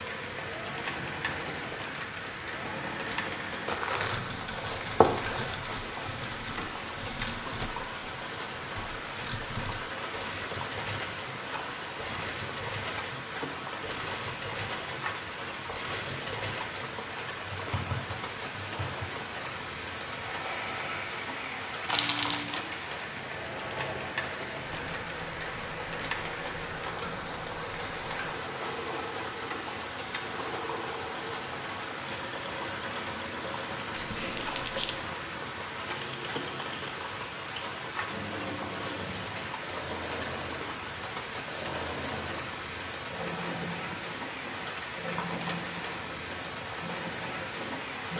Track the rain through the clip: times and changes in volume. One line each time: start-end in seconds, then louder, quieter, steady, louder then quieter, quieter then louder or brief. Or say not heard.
0.0-48.1 steady.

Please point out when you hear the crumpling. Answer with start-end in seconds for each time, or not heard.
3.6-5.5, 21.9-22.6, 34.0-35.0.